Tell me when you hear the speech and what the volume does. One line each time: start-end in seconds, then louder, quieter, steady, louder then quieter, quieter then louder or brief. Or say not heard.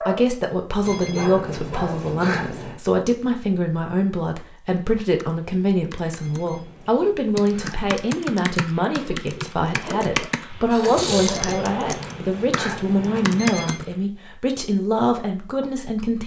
0.0-16.2 steady.